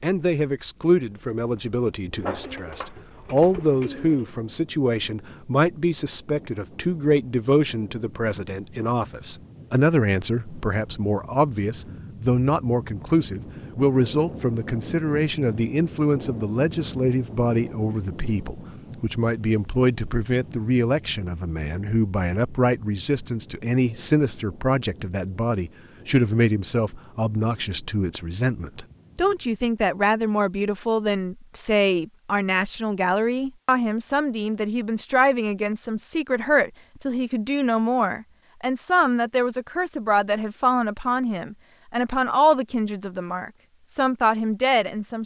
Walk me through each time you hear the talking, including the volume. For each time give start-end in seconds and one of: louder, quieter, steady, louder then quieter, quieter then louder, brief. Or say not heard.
0.0-45.2 steady.